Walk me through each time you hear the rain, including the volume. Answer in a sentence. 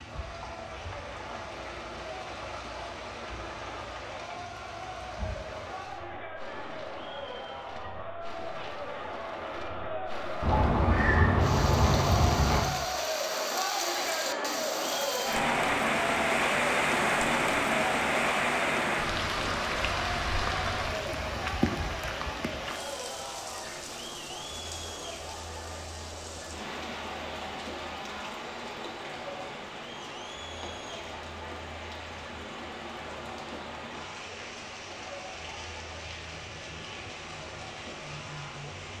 You can hear the rain from 0.0 to 38.9 s, getting louder then quieter.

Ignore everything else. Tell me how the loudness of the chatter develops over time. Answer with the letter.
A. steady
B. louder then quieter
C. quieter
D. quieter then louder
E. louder
B.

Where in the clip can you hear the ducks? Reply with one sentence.
The ducks can be heard from 10.4 to 12.7 s.